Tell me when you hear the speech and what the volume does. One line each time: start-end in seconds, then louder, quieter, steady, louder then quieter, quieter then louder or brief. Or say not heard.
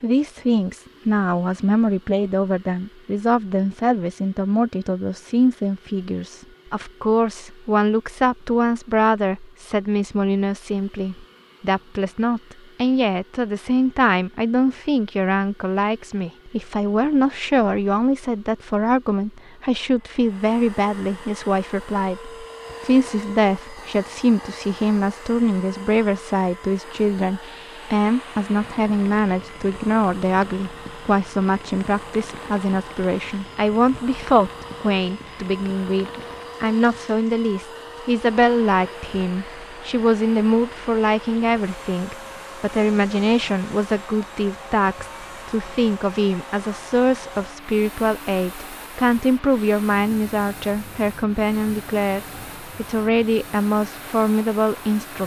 0.0-55.2 steady.